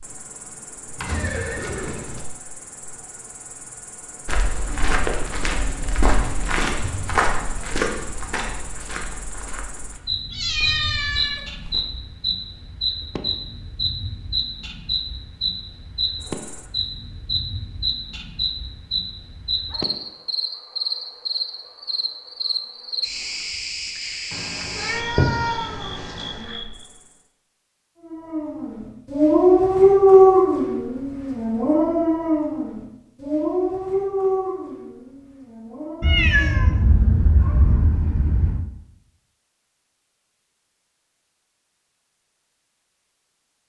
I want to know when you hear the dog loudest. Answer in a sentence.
The loudest moment of the dog is at 30 seconds.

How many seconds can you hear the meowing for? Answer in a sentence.
The meowing can be heard for 6 seconds in total.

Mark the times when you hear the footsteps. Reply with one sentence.
You can hear the footsteps from 4.2 to 11.8 s.